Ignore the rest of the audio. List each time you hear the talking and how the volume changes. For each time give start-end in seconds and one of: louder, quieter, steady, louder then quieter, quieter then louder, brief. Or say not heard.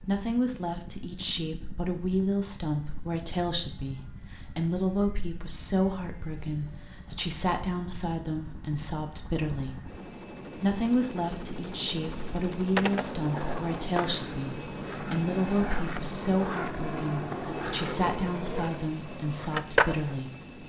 0.0-9.8 steady
10.6-20.4 steady.